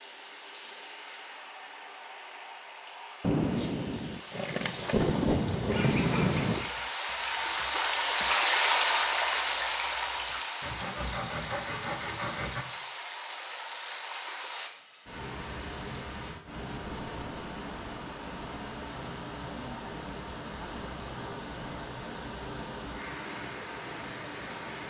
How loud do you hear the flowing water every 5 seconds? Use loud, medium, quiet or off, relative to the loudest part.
quiet, loud, medium, medium, medium.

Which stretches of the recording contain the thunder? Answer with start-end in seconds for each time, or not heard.
3.2-6.7.